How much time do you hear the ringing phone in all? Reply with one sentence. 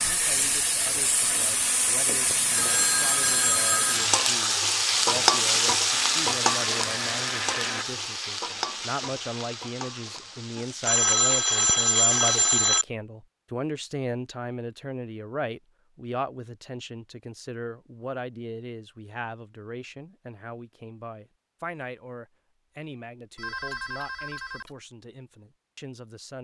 The ringing phone can be heard for 5 seconds in total.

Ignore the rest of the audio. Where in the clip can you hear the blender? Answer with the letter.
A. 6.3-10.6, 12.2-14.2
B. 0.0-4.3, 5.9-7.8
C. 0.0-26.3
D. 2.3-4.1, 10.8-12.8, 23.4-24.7
B.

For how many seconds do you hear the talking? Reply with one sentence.
You can hear the talking for 26 seconds altogether.